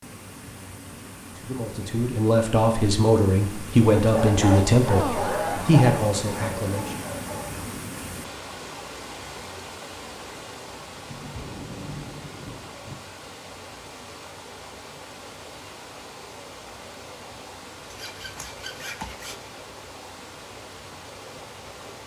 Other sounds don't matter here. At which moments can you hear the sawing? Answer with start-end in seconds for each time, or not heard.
17.9-19.5.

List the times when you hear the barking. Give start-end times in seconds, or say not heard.
4.0-7.5.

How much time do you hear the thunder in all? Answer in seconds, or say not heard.
2 s.